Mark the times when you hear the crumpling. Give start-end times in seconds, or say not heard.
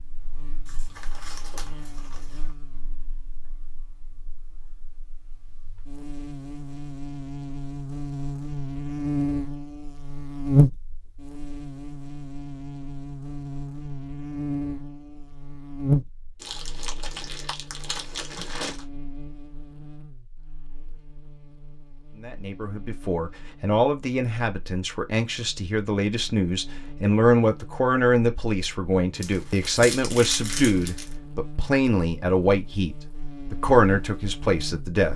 0.7-2.5, 16.4-18.9, 29.2-31.1.